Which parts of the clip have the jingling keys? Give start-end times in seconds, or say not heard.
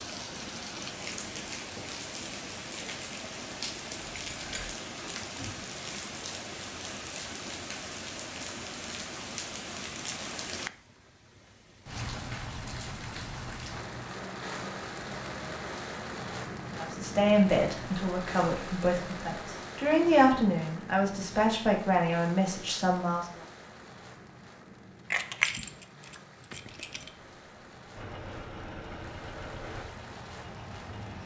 4.0-4.7, 25.1-27.1.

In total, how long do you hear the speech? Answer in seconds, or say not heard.
7 s.